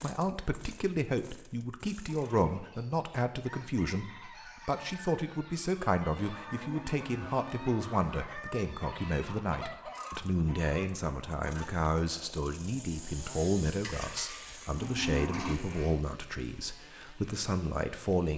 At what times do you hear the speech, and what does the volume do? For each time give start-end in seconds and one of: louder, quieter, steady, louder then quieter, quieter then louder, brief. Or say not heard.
0.0-18.3 steady.